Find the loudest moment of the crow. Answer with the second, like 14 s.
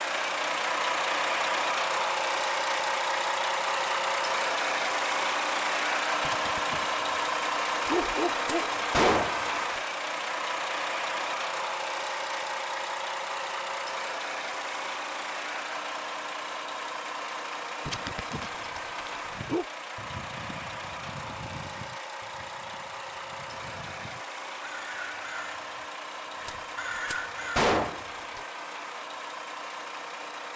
27 s.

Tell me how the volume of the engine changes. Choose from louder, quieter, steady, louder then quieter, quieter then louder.
quieter.